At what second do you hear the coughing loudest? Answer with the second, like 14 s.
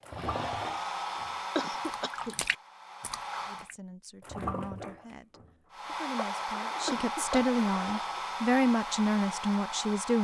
2 s.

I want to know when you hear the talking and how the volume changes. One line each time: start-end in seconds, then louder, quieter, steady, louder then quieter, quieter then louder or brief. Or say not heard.
3.5-10.2 louder.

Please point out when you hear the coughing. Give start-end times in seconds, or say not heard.
1.6-2.4, 6.8-7.6.